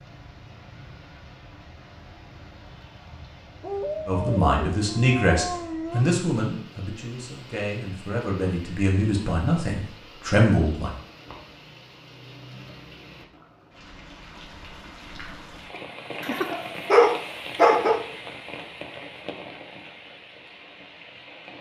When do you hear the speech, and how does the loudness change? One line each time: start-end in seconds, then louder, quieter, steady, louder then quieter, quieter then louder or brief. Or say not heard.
4.0-10.9 quieter then louder.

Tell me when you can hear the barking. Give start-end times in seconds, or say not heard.
3.6-6.1, 16.2-18.0.